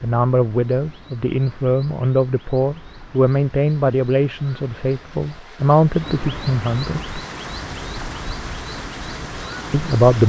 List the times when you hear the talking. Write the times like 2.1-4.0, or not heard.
0.0-7.2, 9.7-10.2.